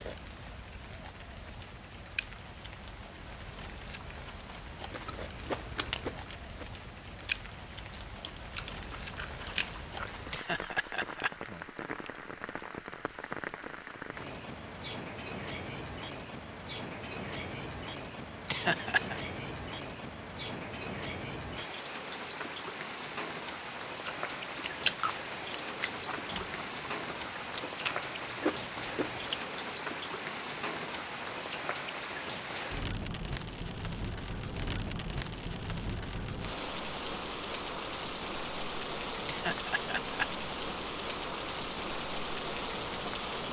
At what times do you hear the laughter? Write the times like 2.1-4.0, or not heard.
10.3-11.3, 18.4-19.2, 39.2-40.2.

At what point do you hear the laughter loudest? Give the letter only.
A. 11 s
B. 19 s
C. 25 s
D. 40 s
B.